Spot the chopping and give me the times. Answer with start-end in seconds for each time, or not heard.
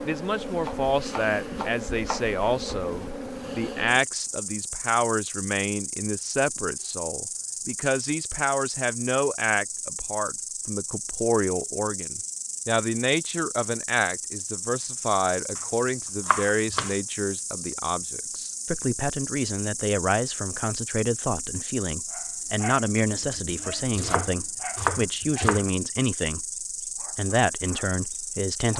0.6-2.8, 16.2-16.9, 23.1-25.6.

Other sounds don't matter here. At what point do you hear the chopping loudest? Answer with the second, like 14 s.
25 s.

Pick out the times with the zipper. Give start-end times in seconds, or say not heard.
not heard.